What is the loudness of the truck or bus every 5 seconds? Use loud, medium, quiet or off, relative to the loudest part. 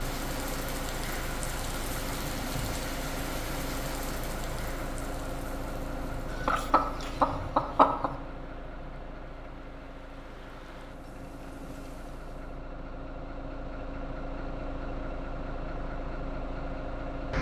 loud, loud, medium, loud.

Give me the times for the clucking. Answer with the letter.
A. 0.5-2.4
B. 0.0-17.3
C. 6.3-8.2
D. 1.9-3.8
C.